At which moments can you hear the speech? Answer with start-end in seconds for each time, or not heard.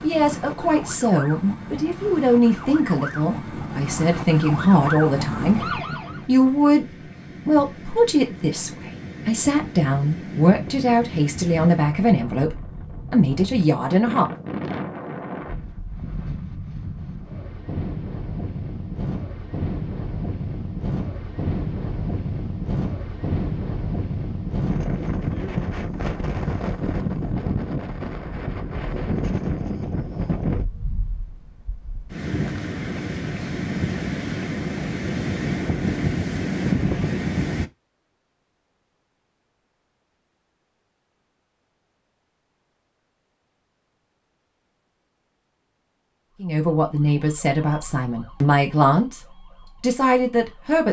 0.0-6.8, 7.5-14.3, 46.4-49.2, 49.8-50.8.